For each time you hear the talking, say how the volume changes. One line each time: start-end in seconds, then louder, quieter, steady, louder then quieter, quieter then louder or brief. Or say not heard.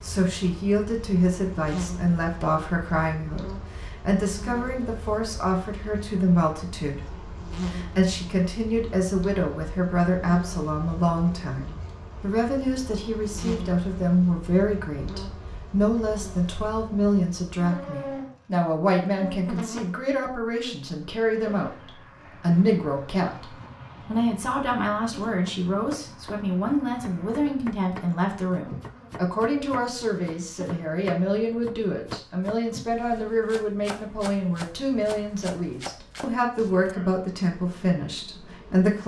0.0-39.0 steady.